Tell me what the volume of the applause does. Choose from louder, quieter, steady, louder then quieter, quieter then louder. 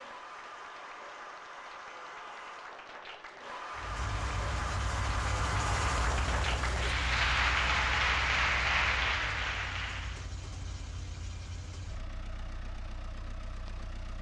louder.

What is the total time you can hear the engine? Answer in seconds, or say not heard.
10 s.